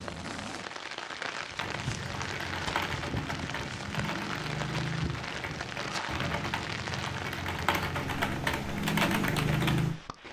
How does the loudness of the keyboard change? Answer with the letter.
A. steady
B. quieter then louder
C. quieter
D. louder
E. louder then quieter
D.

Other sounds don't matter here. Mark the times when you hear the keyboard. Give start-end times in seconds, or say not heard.
1.6-10.0.